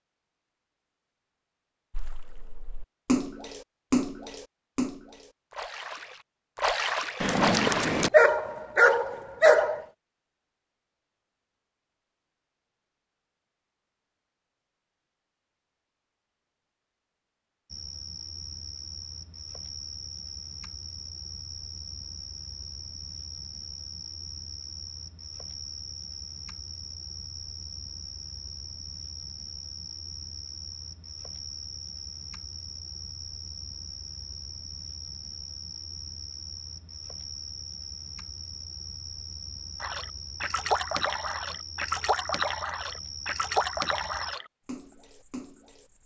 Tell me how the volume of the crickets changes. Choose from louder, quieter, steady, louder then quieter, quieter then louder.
steady.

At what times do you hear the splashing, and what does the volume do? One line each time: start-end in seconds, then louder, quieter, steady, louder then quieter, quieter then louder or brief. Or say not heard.
1.9-8.1 quieter then louder
39.8-45.9 quieter.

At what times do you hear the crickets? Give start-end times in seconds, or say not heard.
17.6-46.0.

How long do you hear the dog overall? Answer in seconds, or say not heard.
3 s.